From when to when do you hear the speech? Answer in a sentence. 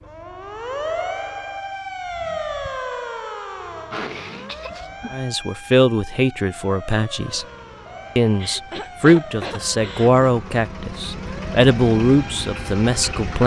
The speech can be heard from 5.1 to 7.5 s and from 8.2 to 13.4 s.